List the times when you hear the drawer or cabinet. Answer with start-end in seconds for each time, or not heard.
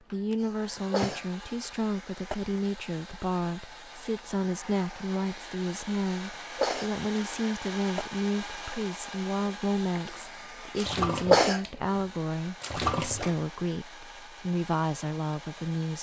0.8-1.2.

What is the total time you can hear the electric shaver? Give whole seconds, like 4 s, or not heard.
not heard.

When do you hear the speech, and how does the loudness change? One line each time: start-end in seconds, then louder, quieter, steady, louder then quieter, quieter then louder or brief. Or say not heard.
0.1-15.9 steady.